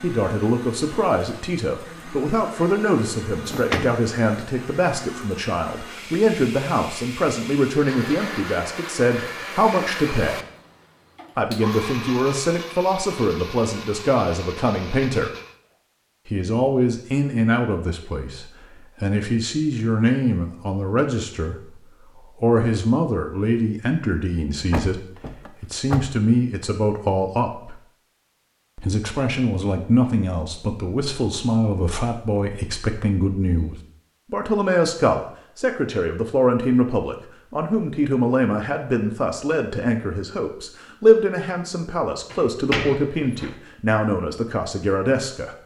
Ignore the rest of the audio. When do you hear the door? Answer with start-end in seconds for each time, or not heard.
3.5-4.0, 24.7-26.2, 42.3-43.5.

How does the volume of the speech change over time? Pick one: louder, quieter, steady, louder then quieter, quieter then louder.
steady.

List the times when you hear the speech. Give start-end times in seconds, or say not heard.
0.0-10.3, 11.3-15.3, 16.2-21.8, 22.4-27.8, 28.8-45.5.